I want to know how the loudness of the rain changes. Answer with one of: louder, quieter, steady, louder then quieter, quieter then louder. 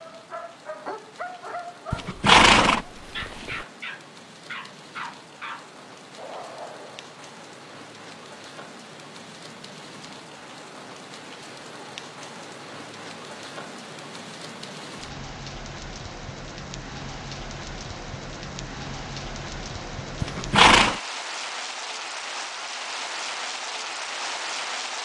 louder.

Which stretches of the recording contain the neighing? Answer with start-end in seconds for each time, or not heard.
1.9-3.5, 20.2-21.0.